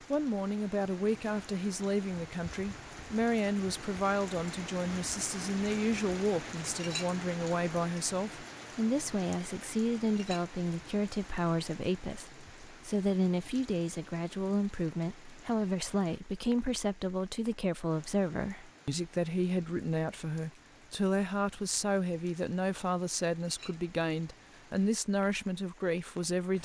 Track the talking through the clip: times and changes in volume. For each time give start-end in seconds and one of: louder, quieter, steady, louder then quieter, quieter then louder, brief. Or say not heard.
0.1-26.5 steady.